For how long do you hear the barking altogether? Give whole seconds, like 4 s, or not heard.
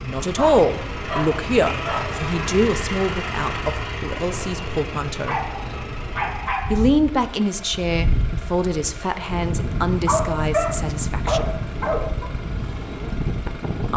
6 s.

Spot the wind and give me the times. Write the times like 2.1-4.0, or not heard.
0.0-13.9.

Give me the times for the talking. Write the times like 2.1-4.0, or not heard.
0.0-5.4, 6.7-11.6.